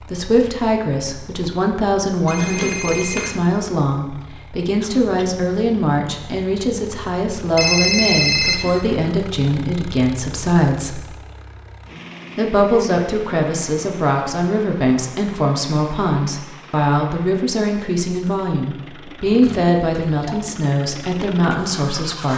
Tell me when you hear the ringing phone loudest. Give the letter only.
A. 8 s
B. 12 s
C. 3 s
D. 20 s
A.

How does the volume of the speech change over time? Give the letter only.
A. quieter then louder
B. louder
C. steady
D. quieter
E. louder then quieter
C.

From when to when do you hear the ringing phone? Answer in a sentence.
The ringing phone can be heard from 2.2 to 3.4 s, from 7.5 to 8.9 s and from 19.2 to 20.4 s.